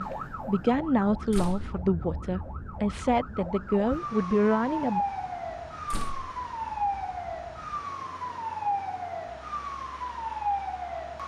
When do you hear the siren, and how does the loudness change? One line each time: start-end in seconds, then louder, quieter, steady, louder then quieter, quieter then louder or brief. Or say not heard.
0.0-11.2 louder.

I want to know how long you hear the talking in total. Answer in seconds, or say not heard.
5 s.